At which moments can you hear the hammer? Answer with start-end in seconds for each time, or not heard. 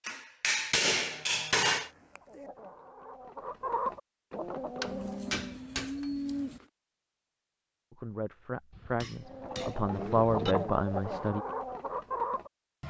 0.1-1.9, 4.8-6.7, 8.7-10.6.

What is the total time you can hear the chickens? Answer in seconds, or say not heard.
7 s.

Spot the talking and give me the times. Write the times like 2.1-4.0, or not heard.
7.9-11.4.